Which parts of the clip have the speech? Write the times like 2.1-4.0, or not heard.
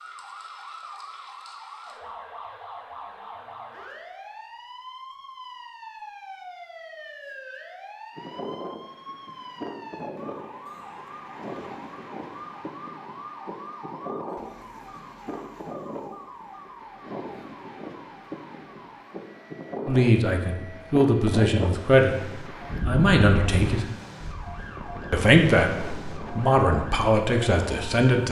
19.9-22.1, 22.9-23.9, 25.1-28.2.